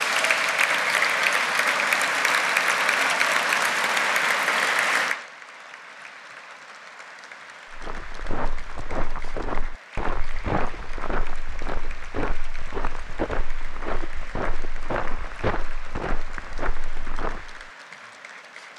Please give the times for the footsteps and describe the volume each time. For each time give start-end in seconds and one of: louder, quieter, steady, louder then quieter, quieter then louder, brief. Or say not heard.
7.7-17.6 steady.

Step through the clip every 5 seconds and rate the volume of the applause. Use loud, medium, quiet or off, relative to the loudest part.
loud, quiet, quiet, quiet.